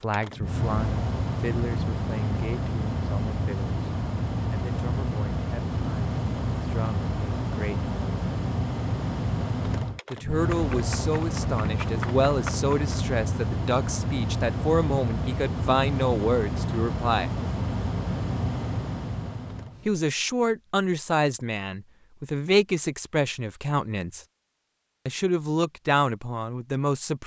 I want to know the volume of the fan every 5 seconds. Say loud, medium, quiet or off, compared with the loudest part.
loud, loud, loud, loud, off, off.